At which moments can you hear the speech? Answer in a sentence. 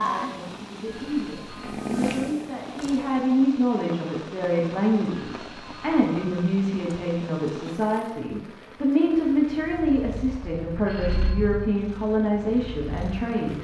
You can hear the speech from 0.0 to 13.5 s.